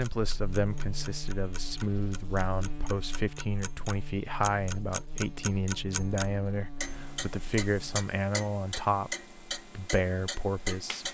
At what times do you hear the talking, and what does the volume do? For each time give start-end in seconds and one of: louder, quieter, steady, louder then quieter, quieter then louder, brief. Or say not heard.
0.0-11.0 steady.